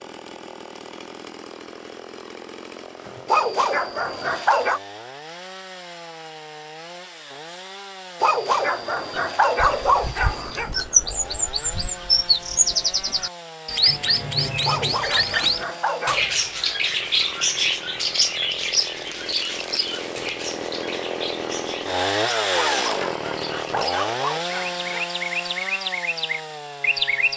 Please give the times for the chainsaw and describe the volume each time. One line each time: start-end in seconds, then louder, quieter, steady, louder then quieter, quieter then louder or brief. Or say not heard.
0.0-27.3 louder.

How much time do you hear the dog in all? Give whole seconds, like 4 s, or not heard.
8 s.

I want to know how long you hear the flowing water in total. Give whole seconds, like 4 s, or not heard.
not heard.